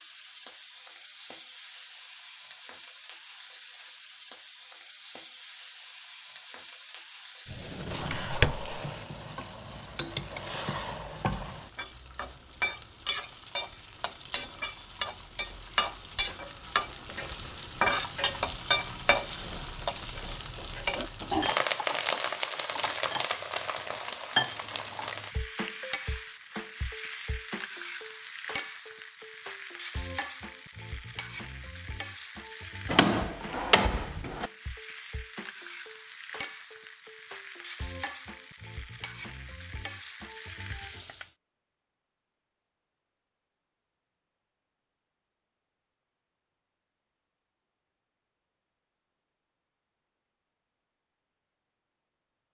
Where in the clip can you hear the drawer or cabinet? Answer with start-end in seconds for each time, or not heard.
7.5-8.8, 32.9-34.5.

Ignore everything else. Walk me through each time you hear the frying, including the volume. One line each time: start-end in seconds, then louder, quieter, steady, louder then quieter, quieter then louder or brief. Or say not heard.
0.0-41.3 louder then quieter.